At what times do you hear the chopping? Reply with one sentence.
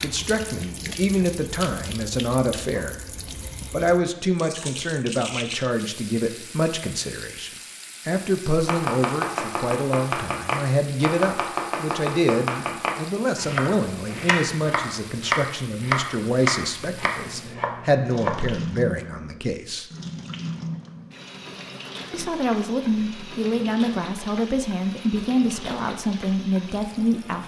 You can hear the chopping from 8.4 to 18.4 s.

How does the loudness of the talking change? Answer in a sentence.
The volume of the talking stays about the same.